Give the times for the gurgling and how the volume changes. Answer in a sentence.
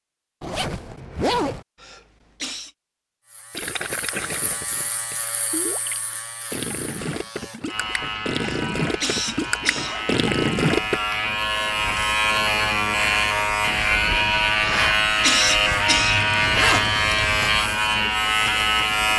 You can hear the gurgling from 3.5 to 11.0 s, getting louder.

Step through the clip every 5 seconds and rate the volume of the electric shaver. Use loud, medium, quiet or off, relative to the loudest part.
quiet, quiet, loud, loud.